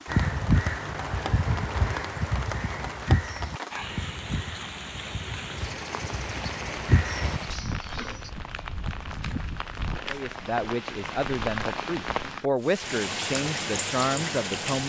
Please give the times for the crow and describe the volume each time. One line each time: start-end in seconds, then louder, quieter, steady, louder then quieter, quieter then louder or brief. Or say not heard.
0.1-8.3 quieter then louder.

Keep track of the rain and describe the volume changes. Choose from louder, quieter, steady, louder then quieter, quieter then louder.
louder.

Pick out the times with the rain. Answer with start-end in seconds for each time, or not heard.
0.0-14.8.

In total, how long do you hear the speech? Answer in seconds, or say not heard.
5 s.